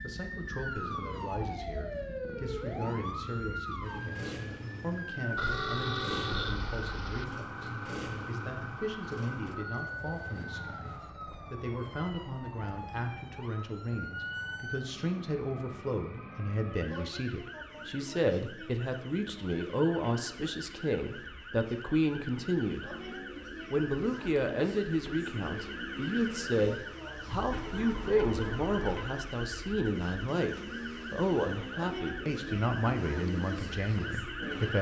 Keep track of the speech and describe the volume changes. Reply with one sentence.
The volume of the speech goes up.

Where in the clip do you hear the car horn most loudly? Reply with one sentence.
The volume of the car horn peaks at 6 seconds.